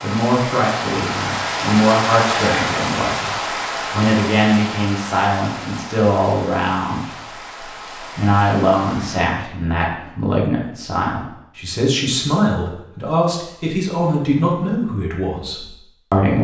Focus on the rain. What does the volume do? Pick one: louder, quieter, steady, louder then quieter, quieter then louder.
quieter.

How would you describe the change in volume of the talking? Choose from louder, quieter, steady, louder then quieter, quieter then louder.
steady.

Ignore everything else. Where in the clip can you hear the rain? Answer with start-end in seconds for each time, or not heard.
0.0-9.2.